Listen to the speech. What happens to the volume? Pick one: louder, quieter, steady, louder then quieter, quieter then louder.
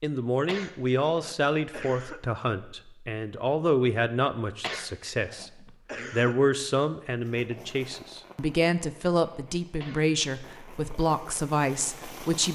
steady.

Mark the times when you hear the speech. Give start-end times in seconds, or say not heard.
0.0-12.5.